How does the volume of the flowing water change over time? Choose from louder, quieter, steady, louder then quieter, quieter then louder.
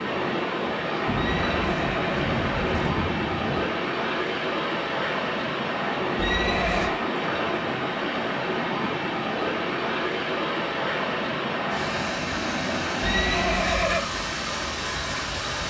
steady.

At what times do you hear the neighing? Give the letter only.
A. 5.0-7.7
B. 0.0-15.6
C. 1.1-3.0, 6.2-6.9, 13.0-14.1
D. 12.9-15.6
C.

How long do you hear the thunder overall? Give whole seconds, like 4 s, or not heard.
3 s.